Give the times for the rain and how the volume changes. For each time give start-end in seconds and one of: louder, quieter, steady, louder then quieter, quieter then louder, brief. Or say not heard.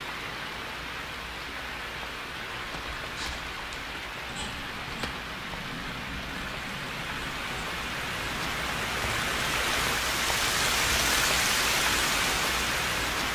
0.0-13.3 louder.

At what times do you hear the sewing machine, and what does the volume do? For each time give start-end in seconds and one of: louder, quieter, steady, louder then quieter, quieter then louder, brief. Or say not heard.
not heard.